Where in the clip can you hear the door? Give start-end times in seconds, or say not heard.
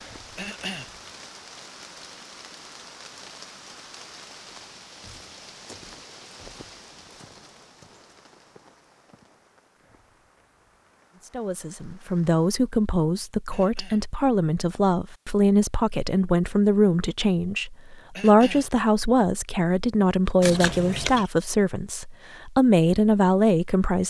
not heard.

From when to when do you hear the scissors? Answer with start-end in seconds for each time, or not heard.
20.4-21.2.